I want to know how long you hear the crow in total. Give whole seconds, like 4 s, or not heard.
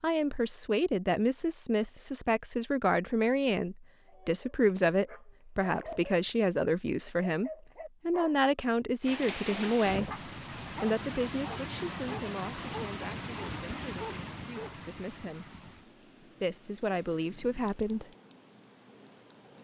not heard.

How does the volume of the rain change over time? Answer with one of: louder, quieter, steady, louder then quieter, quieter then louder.
quieter.